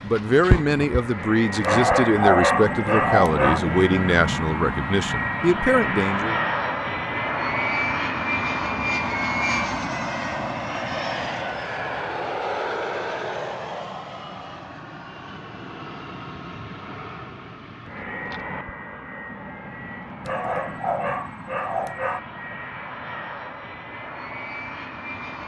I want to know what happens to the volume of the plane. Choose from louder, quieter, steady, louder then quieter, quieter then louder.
quieter.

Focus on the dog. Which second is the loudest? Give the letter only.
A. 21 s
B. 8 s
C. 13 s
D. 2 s
D.